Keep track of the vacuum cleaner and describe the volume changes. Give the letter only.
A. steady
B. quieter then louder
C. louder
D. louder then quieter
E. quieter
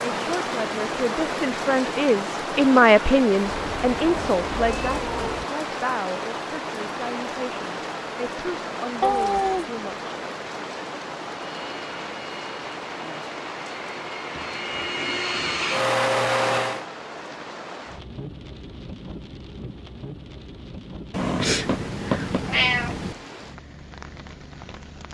C.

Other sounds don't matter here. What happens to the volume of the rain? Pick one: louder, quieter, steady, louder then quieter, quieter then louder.
quieter.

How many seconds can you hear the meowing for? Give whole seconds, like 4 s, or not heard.
5 s.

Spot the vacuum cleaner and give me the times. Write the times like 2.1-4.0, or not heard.
11.4-16.9.